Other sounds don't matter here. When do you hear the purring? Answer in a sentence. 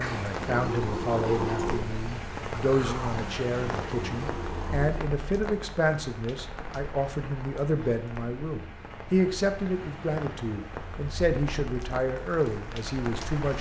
You can hear the purring from 0.0 to 5.0 s.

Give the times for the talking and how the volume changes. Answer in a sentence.
The talking can be heard from 0.0 to 13.5 s, at a steady volume.